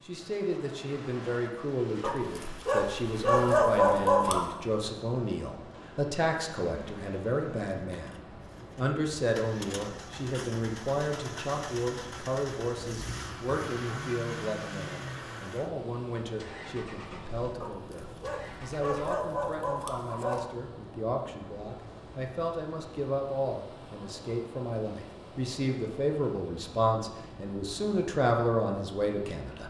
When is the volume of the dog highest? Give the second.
4 s.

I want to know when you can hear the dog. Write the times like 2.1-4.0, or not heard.
2.0-4.6, 17.6-20.4.